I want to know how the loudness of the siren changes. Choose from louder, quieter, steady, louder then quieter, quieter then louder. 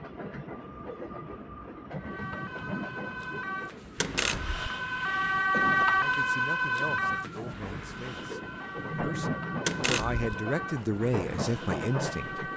louder then quieter.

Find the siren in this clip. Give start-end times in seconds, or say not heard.
1.9-12.5.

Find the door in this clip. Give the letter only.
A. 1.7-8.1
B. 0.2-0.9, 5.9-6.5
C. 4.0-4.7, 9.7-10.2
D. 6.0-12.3
C.